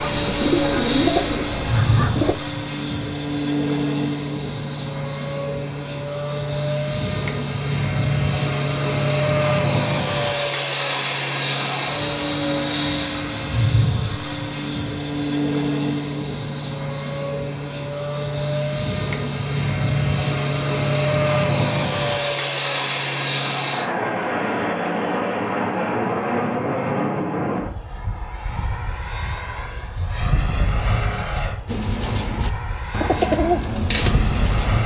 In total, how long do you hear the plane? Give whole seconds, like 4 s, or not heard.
35 s.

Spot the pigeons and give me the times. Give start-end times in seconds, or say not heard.
0.0-2.4, 31.6-34.8.